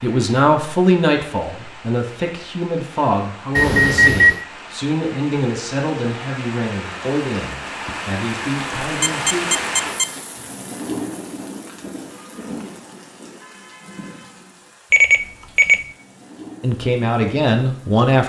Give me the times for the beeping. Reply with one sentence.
You can hear the beeping from 3.5 to 4.5 s, from 9.0 to 10.1 s and from 14.9 to 15.8 s.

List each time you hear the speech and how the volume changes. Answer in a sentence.
You can hear the speech from 0.0 to 9.4 s, getting quieter; and briefly from 16.6 to 18.2 s.